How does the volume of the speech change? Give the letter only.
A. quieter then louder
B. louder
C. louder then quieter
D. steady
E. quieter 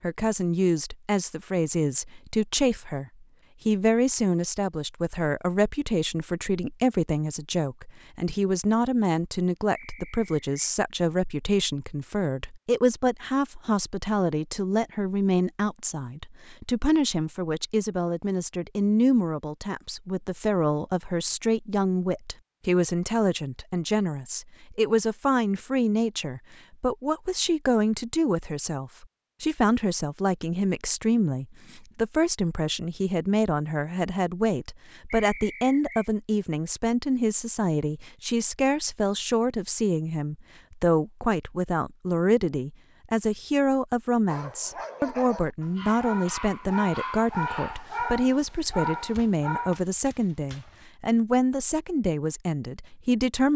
D.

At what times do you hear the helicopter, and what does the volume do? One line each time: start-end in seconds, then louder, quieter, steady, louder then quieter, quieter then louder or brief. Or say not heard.
not heard.